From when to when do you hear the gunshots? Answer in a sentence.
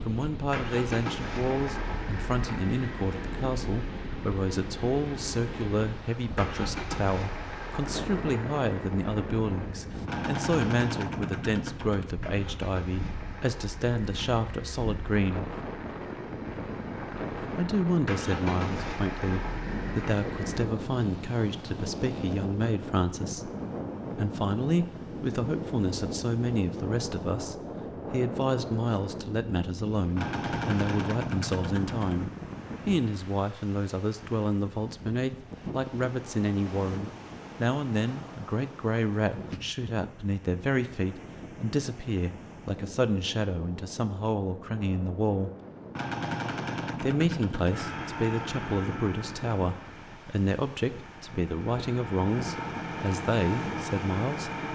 You can hear the gunshots from 10.1 to 12.1 s, from 30.1 to 32.1 s and from 46.0 to 48.0 s.